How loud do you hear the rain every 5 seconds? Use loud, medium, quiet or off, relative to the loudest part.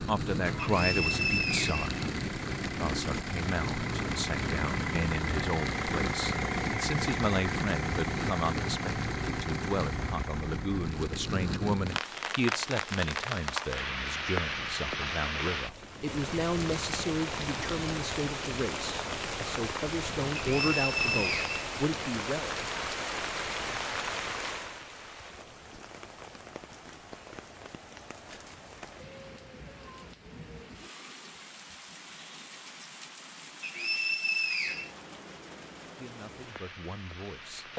loud, loud, loud, loud, loud, quiet, quiet, quiet.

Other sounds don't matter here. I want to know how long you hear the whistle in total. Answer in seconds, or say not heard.
4 s.